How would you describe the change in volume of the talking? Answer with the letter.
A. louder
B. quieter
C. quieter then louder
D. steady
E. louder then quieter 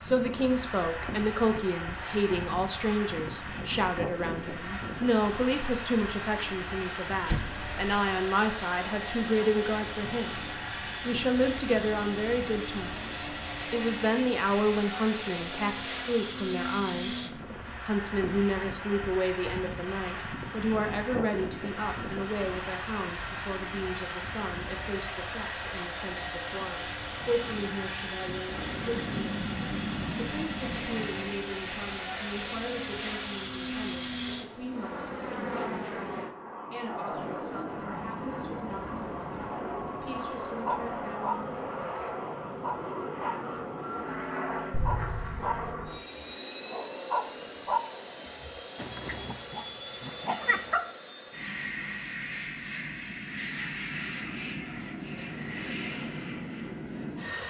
B.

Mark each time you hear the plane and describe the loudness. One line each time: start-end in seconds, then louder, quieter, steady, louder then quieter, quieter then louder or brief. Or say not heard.
0.0-57.4 steady.